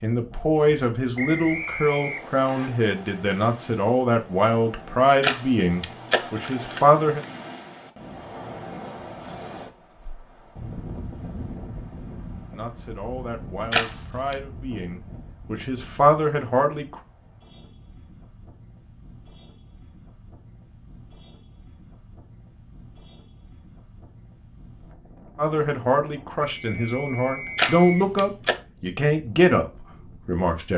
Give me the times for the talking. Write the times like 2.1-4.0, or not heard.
0.0-7.2, 12.5-16.9, 25.4-30.7.